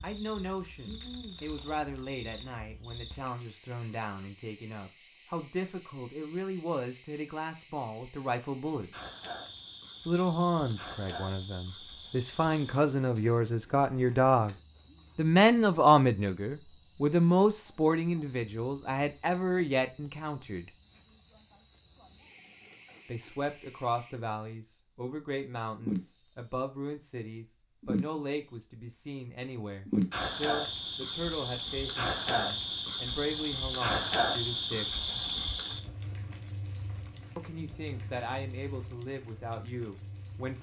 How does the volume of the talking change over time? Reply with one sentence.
The volume of the talking goes up, then down.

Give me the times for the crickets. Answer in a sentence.
You can hear the crickets from 0.0 to 24.6 s, from 25.8 to 26.6 s, from 27.8 to 28.6 s and from 29.9 to 40.5 s.